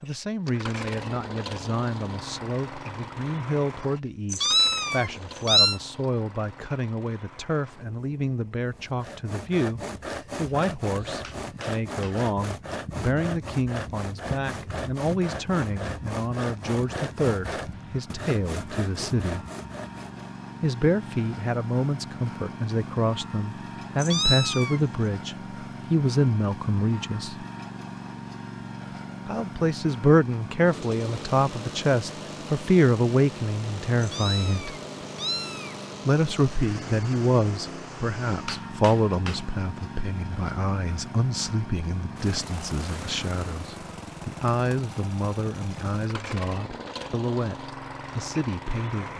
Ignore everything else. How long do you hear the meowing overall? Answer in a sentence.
The meowing can be heard for 4 seconds in total.